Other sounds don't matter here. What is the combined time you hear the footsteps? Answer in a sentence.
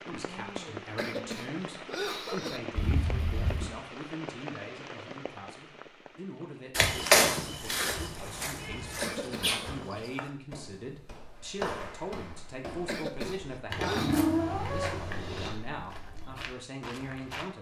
The footsteps can be heard for 11 seconds in total.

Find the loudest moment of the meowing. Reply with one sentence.
The loudest moment of the meowing is at 14 seconds.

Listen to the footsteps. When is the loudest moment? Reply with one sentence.
The volume of the footsteps peaks at 7 seconds.